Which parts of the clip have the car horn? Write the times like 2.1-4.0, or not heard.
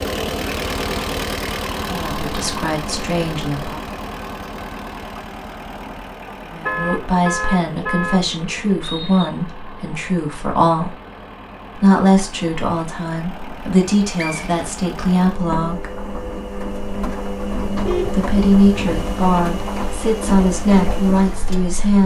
6.7-8.2, 17.6-18.9.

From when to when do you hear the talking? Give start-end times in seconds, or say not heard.
1.9-3.9, 6.5-10.9, 11.8-15.9, 18.1-22.0.